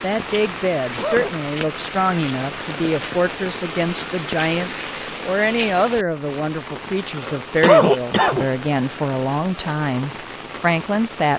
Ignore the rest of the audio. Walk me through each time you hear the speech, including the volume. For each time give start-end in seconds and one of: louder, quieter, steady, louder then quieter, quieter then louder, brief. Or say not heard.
0.0-11.3 steady.